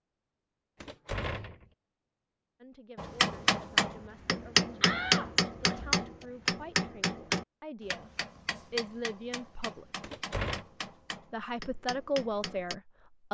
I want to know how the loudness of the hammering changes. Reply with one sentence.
The volume of the hammering goes down.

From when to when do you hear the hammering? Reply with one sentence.
The hammering can be heard from 3.0 to 12.8 s.